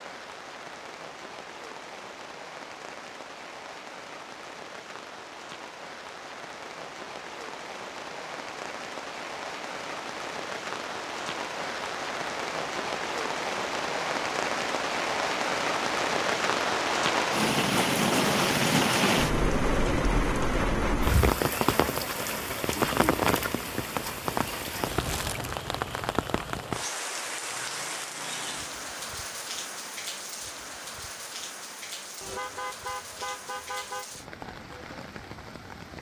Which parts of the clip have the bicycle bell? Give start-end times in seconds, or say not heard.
not heard.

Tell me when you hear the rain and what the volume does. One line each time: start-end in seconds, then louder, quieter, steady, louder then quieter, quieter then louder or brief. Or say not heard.
0.0-35.9 louder then quieter.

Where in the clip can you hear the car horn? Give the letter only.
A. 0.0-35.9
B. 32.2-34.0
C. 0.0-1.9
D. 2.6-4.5
B.